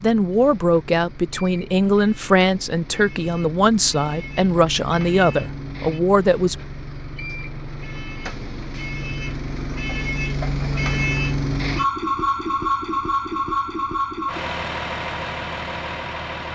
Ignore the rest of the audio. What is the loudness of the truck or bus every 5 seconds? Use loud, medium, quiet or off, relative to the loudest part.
quiet, medium, loud, medium.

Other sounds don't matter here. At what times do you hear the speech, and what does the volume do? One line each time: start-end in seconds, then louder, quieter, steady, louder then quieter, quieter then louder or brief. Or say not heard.
0.0-6.5 steady.